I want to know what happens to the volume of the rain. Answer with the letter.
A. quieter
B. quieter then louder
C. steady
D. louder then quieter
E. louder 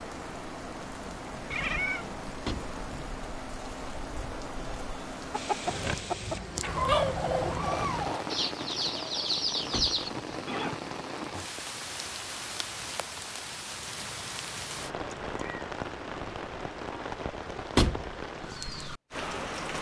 C.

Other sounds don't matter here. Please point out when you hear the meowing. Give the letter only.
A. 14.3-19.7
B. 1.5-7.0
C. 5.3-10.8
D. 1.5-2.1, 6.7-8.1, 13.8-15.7
D.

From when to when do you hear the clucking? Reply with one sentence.
The clucking can be heard from 5.3 to 10.8 s.